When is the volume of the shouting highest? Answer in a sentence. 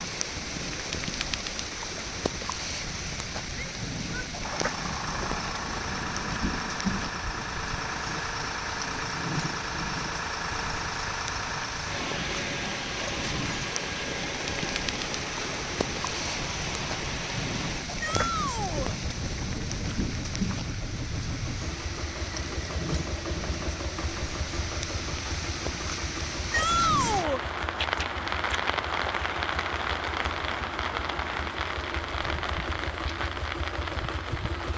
The loudest moment of the shouting is at 27 seconds.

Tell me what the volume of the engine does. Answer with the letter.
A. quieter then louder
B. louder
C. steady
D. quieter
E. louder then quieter
D.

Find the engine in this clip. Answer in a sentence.
You can hear the engine from 4.4 to 34.7 s.